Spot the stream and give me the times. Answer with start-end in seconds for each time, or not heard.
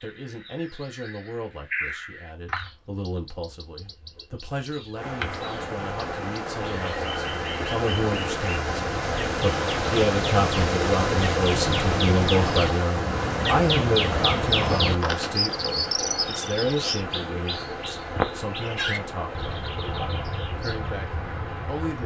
5.0-22.0.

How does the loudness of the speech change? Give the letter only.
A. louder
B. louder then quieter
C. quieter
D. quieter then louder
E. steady
B.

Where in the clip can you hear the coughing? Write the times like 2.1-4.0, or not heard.
not heard.